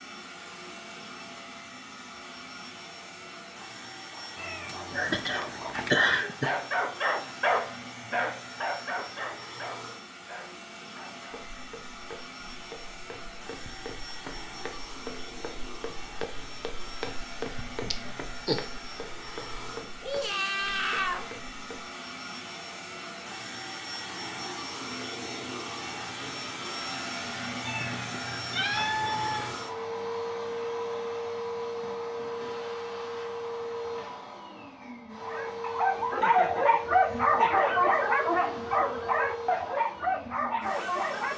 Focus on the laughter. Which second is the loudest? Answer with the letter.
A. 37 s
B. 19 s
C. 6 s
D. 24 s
C.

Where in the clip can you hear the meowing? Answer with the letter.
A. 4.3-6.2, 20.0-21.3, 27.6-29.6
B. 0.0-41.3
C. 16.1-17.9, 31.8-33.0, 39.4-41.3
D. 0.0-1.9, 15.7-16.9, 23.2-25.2
A.